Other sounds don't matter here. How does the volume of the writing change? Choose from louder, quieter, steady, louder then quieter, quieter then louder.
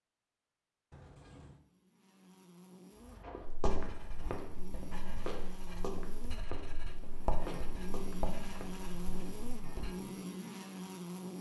louder then quieter.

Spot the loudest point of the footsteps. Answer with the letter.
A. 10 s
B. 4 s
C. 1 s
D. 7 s
B.